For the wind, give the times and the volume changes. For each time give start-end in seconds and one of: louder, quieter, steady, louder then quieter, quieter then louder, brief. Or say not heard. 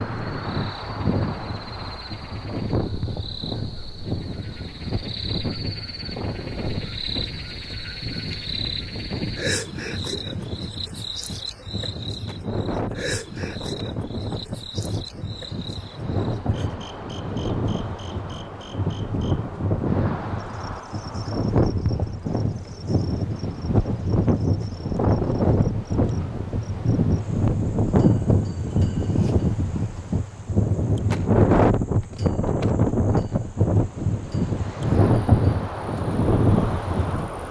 0.0-37.4 louder.